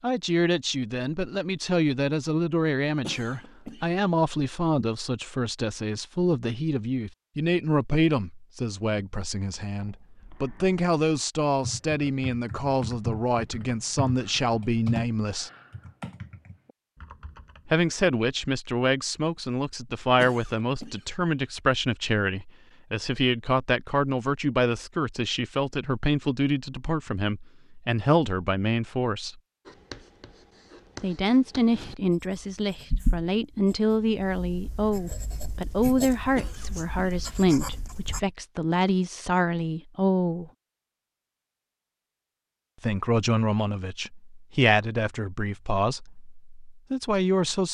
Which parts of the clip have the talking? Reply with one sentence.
The talking can be heard from 0.0 to 15.5 s, from 17.6 to 29.4 s, from 31.0 to 40.5 s and from 42.8 to 47.6 s.